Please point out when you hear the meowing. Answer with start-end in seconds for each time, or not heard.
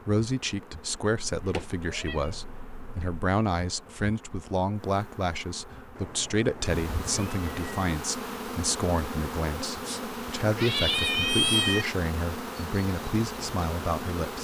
1.4-3.2, 6.0-8.0, 9.8-11.8.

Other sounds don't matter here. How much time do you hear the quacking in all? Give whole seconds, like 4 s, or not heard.
not heard.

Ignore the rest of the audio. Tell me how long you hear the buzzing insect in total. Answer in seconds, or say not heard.
14 s.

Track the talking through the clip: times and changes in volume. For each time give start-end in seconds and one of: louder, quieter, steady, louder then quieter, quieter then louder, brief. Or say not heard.
0.1-14.3 steady.